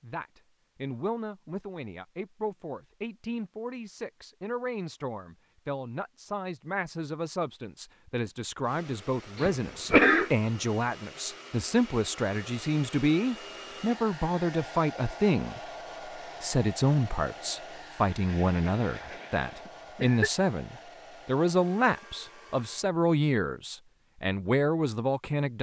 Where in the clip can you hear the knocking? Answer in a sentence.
The knocking can't be heard in this clip.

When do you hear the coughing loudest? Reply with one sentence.
The loudest moment of the coughing is at 10 seconds.